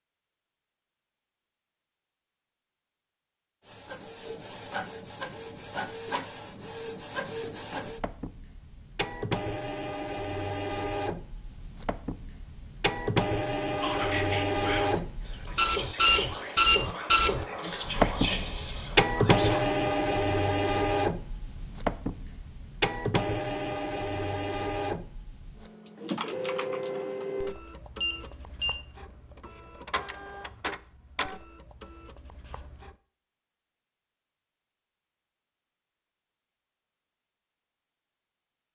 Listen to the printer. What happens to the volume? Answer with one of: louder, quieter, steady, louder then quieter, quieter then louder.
louder then quieter.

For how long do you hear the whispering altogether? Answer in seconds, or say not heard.
6 s.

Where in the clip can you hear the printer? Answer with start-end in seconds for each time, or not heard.
3.6-33.0.